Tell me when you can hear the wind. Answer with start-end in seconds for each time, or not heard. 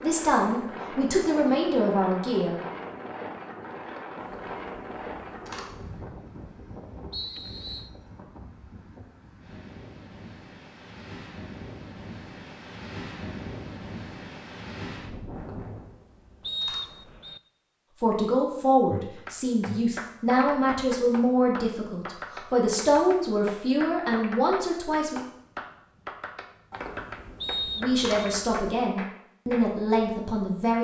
0.0-15.9.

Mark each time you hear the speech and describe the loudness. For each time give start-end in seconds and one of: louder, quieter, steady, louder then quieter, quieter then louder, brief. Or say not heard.
0.0-2.5 brief
17.9-25.2 steady
27.8-30.7 brief.